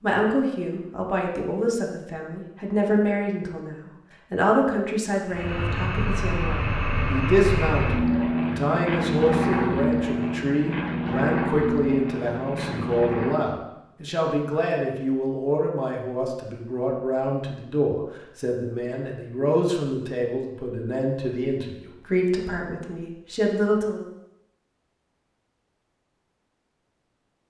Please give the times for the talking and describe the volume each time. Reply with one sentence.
You can hear the talking from 0.0 to 24.0 s, at a steady volume.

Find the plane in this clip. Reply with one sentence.
You can hear the plane from 5.2 to 13.5 s.